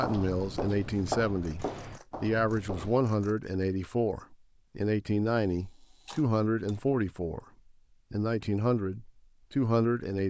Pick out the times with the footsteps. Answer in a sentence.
You can hear the footsteps from 0.0 to 3.0 s.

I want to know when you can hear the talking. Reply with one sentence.
You can hear the talking from 0.0 to 7.5 s and from 8.1 to 10.2 s.